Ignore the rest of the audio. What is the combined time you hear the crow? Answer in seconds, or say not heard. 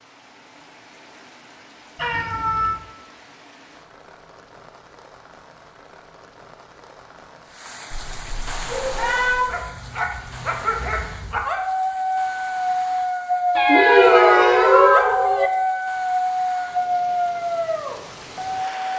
not heard.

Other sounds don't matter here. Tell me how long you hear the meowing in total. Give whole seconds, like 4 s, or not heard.
4 s.